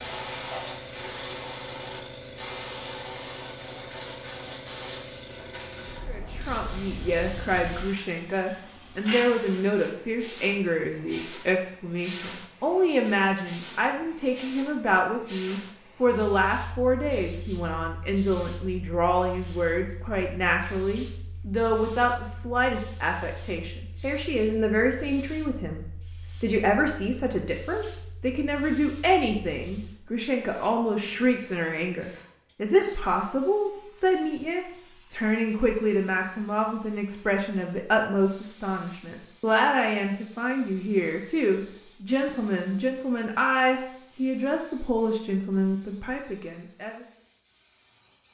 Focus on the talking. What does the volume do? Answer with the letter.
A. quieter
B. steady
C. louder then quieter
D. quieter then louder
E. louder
B.